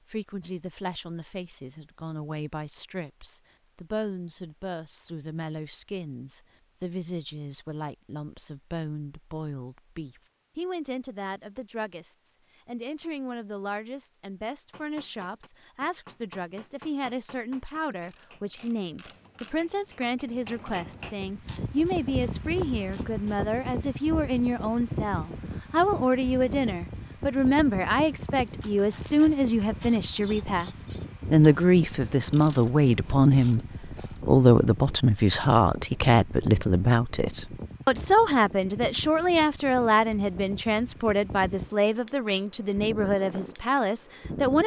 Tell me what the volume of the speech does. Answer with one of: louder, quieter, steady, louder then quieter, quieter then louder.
louder.